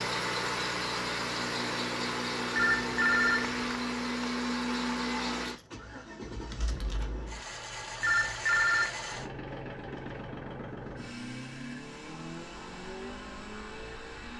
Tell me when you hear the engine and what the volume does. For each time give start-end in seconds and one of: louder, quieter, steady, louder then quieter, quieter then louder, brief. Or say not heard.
0.0-14.3 quieter.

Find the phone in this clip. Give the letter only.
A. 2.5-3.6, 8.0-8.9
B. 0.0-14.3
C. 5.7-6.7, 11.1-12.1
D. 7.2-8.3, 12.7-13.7
A.